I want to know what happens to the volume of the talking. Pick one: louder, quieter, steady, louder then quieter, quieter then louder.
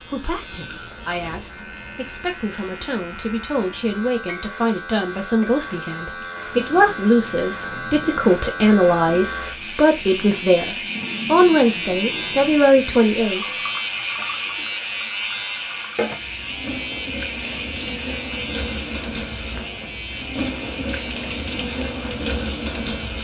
louder.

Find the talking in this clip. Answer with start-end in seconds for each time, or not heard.
0.0-13.4.